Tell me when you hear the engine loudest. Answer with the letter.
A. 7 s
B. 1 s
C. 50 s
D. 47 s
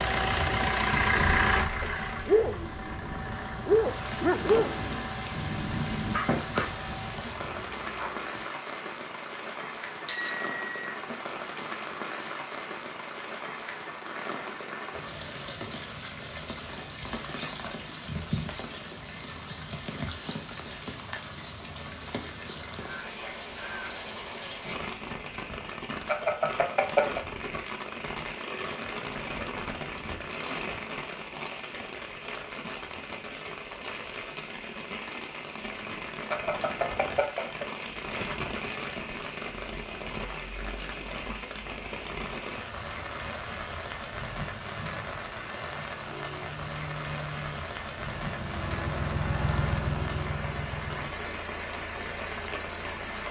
B.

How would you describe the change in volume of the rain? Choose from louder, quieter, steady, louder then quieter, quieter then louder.
steady.